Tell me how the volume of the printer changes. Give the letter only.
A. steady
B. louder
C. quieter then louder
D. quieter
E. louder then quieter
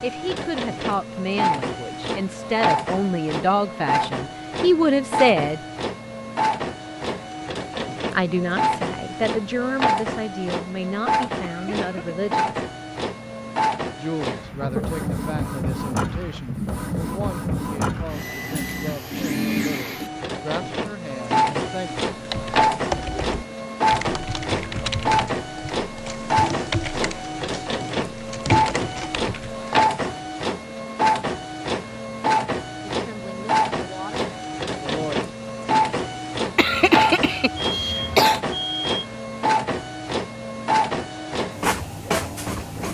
A.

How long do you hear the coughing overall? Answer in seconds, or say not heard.
3 s.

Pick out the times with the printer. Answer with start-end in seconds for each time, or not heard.
0.0-42.8.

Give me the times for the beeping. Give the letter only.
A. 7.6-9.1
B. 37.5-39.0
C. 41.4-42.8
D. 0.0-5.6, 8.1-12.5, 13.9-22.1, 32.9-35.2
B.